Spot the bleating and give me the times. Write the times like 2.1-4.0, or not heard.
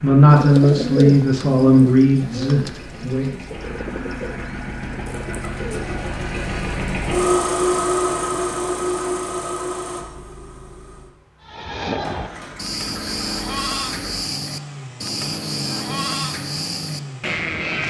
11.4-17.8.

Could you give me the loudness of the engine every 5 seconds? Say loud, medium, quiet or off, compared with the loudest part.
quiet, loud, quiet, medium.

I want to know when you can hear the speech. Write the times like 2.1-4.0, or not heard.
0.0-3.3.